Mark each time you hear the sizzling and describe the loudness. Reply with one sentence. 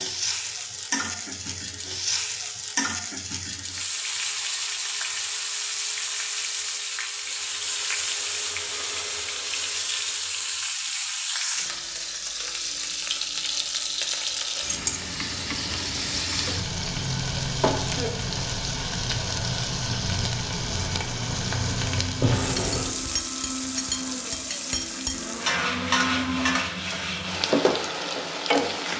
You can hear the sizzling from 0.0 to 28.9 s, at a steady volume.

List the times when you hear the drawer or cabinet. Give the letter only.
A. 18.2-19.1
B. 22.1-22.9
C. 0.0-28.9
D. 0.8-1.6
B.